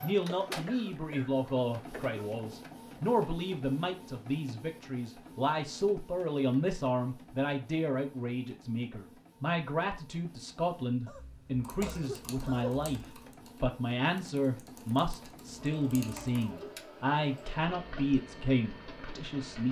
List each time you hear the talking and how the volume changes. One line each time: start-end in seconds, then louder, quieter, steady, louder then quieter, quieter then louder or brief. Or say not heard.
0.0-19.6 steady.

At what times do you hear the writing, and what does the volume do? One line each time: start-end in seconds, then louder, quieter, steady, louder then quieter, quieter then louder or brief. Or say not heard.
not heard.